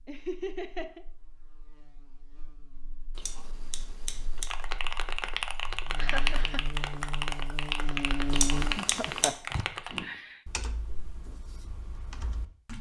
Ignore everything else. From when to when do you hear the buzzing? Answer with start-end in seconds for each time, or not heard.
0.1-8.8.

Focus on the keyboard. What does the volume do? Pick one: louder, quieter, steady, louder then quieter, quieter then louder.
quieter.